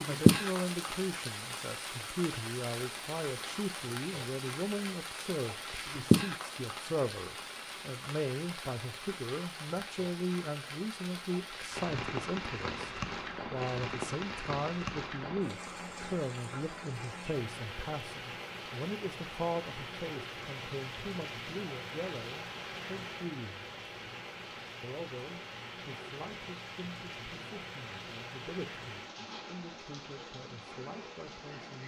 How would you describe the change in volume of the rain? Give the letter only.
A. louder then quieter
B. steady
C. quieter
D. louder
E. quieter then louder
C.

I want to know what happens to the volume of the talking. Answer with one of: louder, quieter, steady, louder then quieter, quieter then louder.
quieter.